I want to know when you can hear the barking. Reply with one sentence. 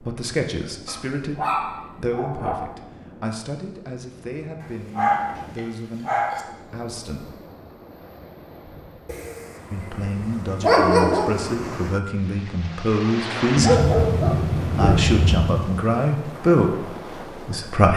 You can hear the barking from 0.8 to 2.6 s, from 4.6 to 6.5 s, from 9.1 to 11.3 s and from 13.6 to 15.6 s.